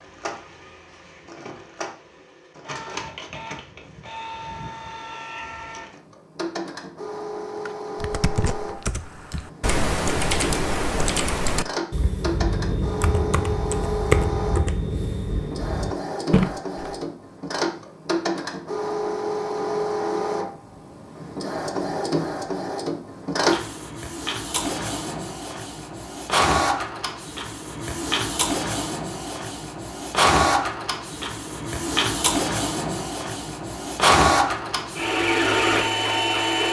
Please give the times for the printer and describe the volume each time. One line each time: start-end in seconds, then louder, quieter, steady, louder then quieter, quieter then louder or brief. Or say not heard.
0.0-36.6 louder.